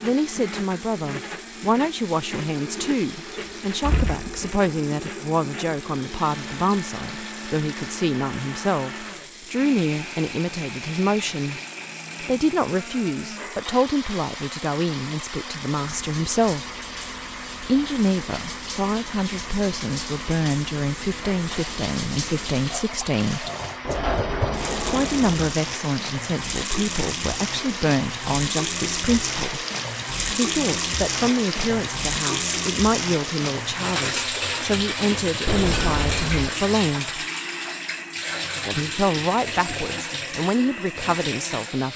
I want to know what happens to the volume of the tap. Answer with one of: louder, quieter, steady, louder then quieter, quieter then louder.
louder.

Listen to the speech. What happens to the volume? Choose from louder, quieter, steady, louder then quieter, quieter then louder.
steady.